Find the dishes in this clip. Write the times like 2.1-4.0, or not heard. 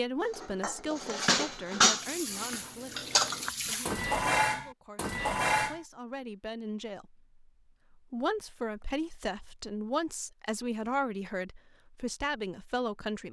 0.2-5.8.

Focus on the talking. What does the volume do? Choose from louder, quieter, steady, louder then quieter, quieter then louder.
quieter then louder.